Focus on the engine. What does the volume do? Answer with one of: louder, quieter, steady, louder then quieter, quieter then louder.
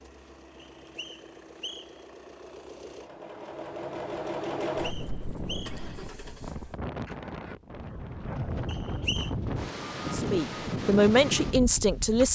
louder then quieter.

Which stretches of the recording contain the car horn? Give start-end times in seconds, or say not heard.
not heard.